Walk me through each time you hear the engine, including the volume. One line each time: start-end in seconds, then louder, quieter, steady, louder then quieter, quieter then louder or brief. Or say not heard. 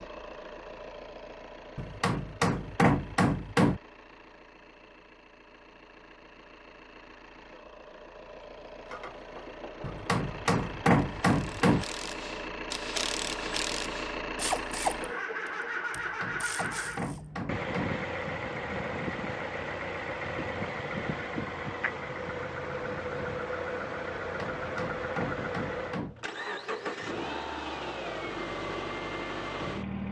0.0-30.0 louder.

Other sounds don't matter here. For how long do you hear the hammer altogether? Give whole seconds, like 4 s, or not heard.
8 s.